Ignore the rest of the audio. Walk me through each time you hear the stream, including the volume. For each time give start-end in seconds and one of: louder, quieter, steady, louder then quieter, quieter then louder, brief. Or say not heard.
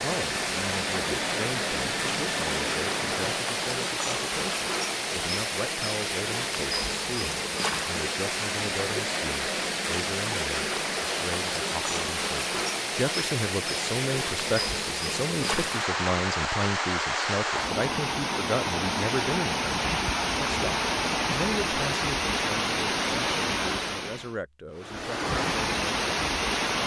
0.0-26.8 steady.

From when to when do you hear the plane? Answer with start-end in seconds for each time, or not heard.
0.2-3.4.